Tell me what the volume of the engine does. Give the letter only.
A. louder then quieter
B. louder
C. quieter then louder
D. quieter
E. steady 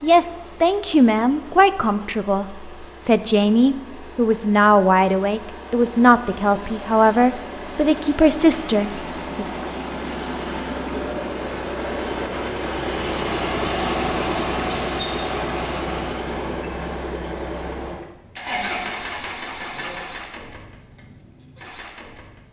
A.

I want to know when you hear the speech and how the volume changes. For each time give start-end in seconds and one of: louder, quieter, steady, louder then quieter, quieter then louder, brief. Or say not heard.
0.0-9.4 steady.